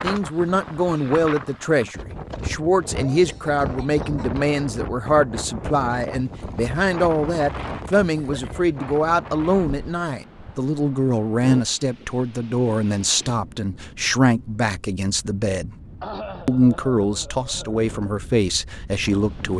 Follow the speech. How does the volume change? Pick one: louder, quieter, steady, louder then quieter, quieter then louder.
steady.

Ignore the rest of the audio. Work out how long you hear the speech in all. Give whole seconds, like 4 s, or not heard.
19 s.